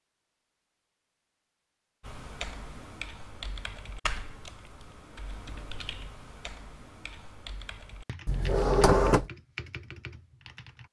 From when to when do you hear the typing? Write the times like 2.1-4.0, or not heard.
2.0-10.8.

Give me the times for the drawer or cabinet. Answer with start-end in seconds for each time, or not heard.
8.2-9.3.